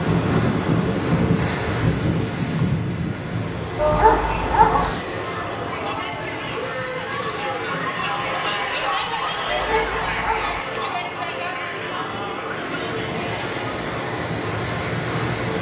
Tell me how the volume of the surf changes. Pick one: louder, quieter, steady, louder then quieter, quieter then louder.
quieter then louder.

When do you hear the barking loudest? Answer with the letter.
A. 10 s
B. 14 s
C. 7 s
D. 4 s
D.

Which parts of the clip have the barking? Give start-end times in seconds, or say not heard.
3.8-4.9, 9.4-10.6.